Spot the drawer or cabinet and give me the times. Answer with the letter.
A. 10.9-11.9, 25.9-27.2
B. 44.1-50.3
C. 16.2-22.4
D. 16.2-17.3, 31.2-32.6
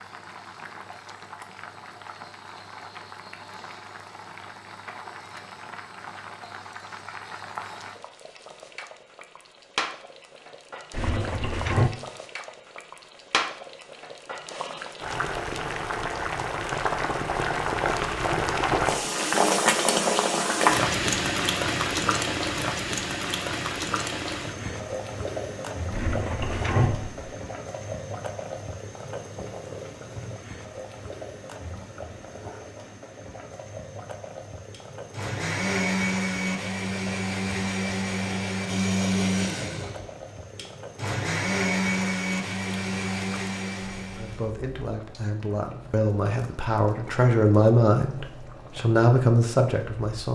A.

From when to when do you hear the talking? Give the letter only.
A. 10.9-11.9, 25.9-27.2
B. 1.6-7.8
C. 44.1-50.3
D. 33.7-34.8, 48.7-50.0
C.